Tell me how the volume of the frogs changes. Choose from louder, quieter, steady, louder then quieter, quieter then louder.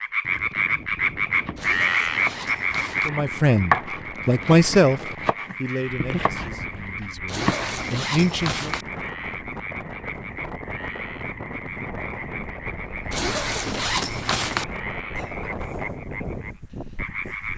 quieter.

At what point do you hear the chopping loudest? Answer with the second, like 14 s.
4 s.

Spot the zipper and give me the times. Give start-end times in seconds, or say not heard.
1.6-3.1, 7.2-8.8, 13.1-14.7.